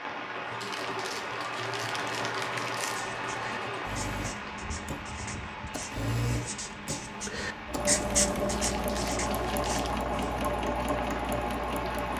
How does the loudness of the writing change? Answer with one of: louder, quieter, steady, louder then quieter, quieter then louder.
louder.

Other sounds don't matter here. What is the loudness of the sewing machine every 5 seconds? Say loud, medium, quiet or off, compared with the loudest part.
medium, loud, loud.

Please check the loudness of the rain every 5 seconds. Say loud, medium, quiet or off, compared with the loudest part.
loud, medium, loud.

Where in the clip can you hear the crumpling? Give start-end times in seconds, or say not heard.
0.6-3.0, 8.5-9.9.